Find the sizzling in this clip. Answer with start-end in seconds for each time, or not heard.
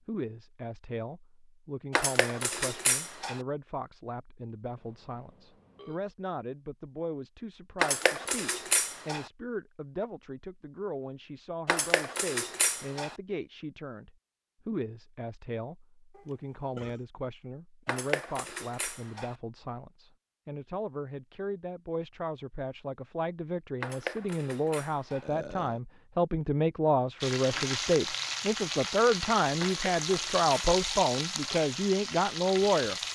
27.2-33.1.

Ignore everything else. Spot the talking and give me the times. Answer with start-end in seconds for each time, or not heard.
0.1-33.1.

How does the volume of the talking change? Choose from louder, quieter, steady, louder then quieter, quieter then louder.
louder.